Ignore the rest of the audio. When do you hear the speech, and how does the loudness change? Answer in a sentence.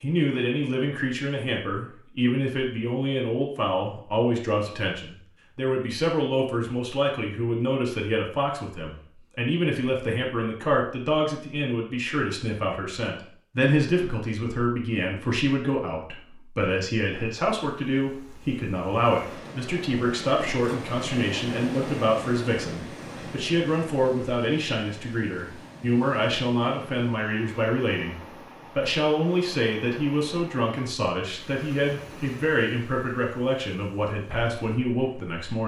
The speech can be heard from 0.0 to 35.6 s, at a steady volume.